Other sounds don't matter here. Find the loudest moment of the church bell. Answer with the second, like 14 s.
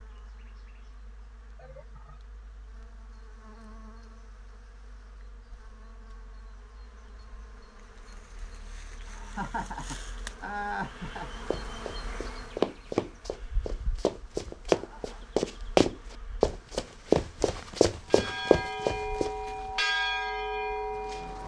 20 s.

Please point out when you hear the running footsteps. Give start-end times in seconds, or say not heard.
11.5-19.3.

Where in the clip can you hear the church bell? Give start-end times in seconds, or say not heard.
18.1-21.4.